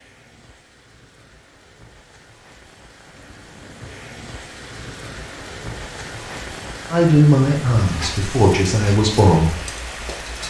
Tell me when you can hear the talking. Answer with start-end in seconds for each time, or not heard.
6.9-9.6.